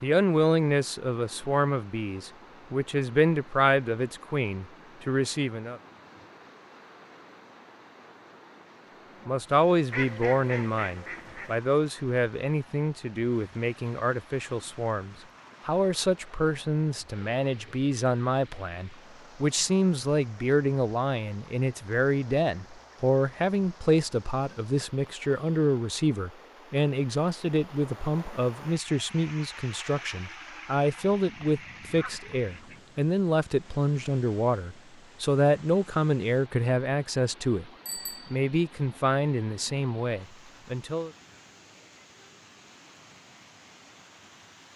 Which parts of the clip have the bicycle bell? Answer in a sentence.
You can hear the bicycle bell from 37.9 to 38.4 s.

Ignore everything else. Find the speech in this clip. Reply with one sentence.
The speech can be heard from 0.0 to 5.8 s, from 9.2 to 37.7 s and from 38.3 to 41.1 s.